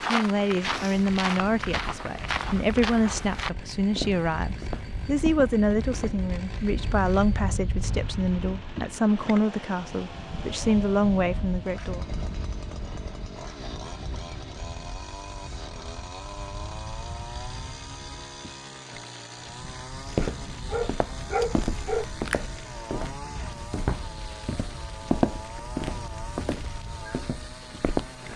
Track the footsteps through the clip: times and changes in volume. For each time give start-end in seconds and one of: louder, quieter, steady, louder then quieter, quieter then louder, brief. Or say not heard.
0.0-6.2 steady
20.0-28.2 louder then quieter.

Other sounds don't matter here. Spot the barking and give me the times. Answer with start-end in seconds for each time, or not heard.
20.6-22.1.